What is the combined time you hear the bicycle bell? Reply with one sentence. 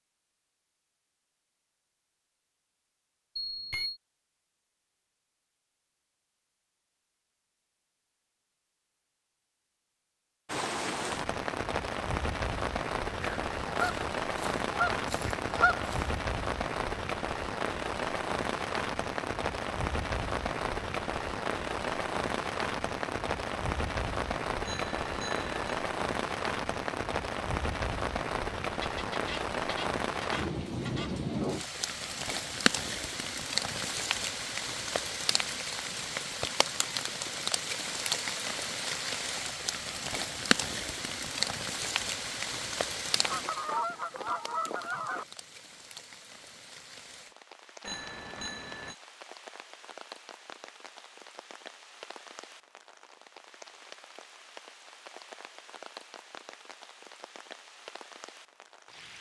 You can hear the bicycle bell for 3 seconds altogether.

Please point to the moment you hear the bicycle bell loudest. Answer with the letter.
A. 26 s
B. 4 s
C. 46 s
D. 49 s
B.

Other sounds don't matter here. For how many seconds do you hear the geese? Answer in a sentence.
The geese can be heard for 7 seconds in total.